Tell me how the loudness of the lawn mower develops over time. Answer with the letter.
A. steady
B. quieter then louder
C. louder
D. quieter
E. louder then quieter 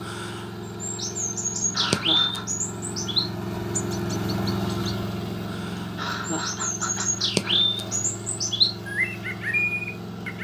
E.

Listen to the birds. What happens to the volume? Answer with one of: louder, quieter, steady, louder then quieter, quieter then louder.
quieter then louder.